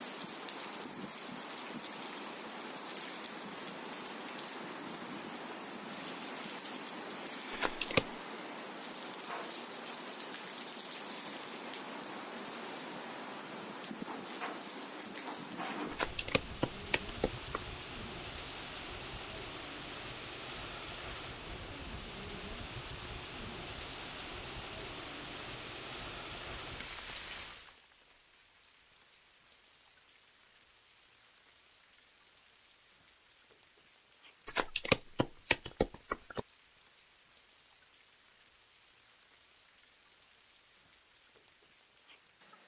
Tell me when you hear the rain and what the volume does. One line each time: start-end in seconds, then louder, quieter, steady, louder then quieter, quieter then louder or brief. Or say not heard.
0.0-42.6 quieter.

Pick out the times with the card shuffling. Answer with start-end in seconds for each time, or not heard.
7.5-8.1, 15.9-17.6, 34.5-36.4.